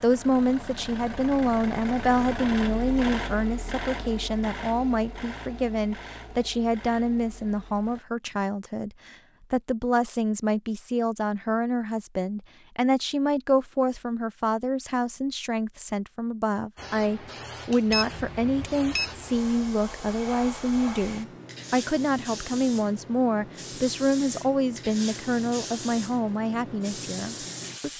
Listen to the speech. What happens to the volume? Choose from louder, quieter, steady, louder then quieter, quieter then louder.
steady.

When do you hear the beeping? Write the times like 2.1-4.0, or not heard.
17.9-19.1.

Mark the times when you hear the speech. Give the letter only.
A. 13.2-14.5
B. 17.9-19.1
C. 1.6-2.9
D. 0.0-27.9
D.